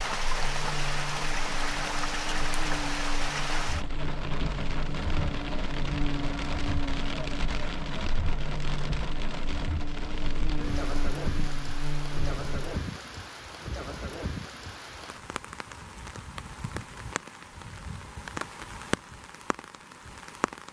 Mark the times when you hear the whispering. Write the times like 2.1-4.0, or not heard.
not heard.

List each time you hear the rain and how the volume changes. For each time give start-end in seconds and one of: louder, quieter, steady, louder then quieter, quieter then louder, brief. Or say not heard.
0.0-20.6 quieter.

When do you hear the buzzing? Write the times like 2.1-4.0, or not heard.
0.2-12.8.